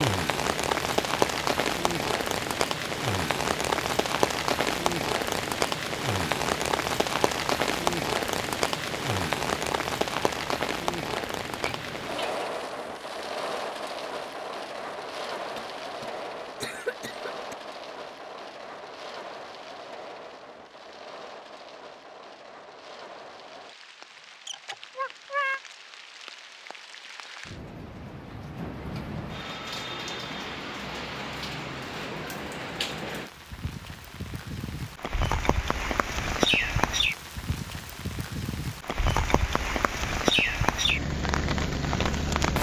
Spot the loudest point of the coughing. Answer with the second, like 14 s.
17 s.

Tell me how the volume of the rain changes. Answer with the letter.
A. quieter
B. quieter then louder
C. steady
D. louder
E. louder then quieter
B.